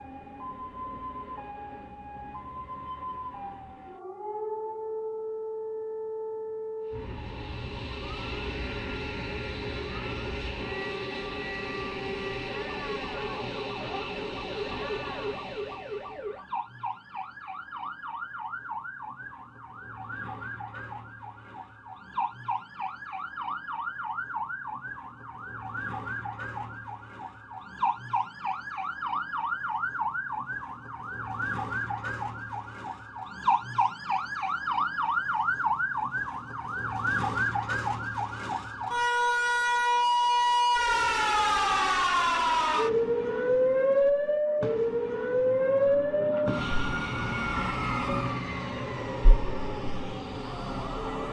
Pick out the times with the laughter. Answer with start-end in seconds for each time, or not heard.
not heard.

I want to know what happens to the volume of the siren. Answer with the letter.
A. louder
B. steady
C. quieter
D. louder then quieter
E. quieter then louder
A.